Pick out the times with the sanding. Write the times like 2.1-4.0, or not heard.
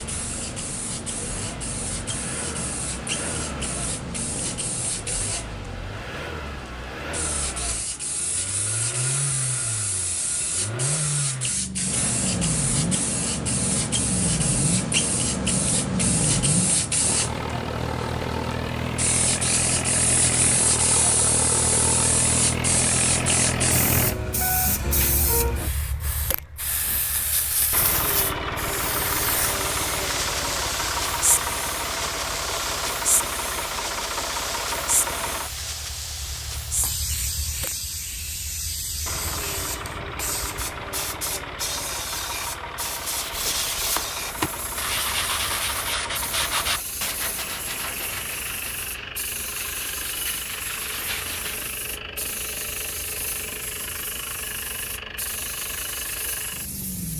42.9-51.8.